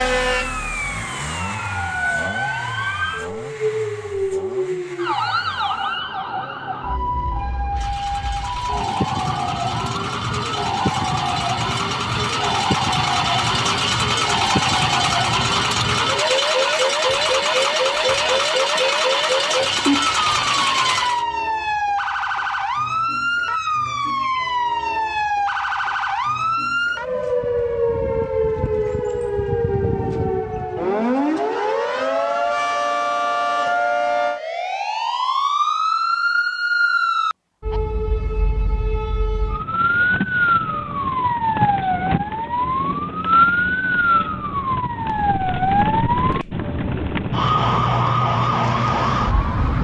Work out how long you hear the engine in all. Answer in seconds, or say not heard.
21 s.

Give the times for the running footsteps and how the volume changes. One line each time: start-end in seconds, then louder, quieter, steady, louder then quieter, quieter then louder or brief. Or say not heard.
not heard.